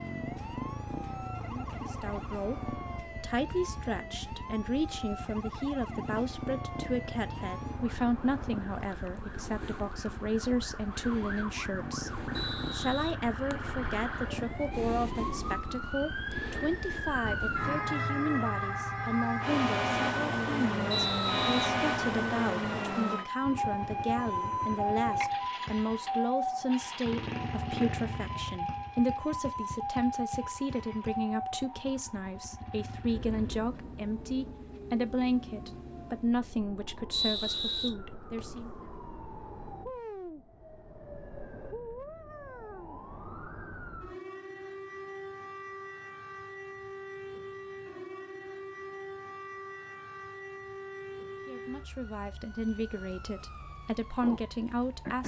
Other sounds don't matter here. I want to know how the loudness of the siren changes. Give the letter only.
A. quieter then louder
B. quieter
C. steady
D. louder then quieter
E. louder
D.